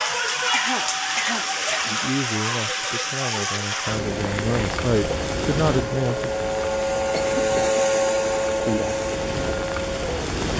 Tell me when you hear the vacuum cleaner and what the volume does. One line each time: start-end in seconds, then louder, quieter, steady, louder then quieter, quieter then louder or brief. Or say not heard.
0.0-10.3 louder.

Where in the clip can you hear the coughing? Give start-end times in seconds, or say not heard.
0.5-1.9, 7.1-7.8.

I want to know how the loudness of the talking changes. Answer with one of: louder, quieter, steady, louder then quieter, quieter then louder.
louder.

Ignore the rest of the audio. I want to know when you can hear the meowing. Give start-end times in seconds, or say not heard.
not heard.